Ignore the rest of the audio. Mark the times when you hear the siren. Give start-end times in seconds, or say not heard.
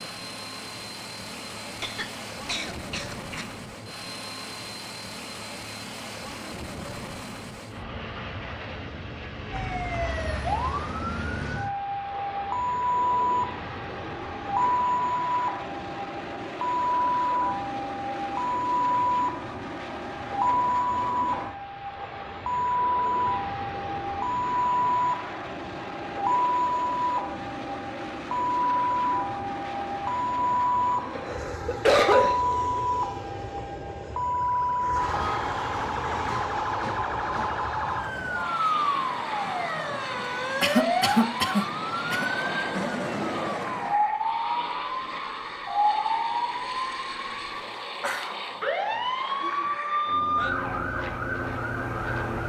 9.5-52.4.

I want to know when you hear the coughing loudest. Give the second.
32 s.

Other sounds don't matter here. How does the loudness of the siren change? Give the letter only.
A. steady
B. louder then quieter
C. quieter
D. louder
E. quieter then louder
A.